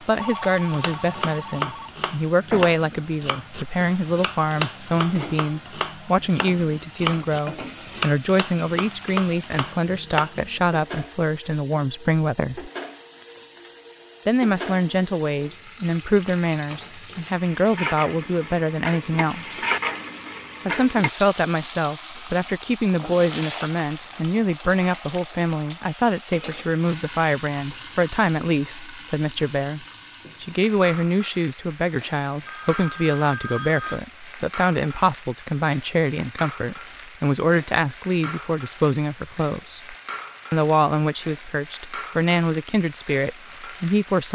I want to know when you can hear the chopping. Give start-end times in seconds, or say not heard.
0.7-10.7.